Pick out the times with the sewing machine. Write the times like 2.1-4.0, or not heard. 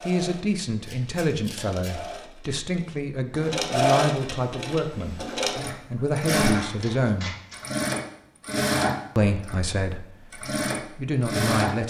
0.0-11.8.